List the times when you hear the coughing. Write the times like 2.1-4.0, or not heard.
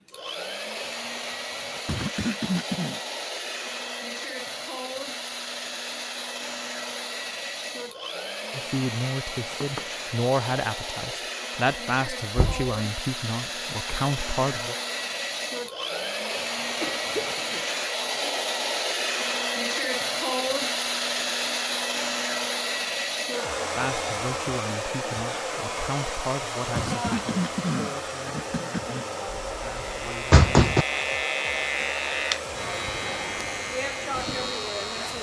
1.9-3.0, 16.8-17.6, 26.8-29.1.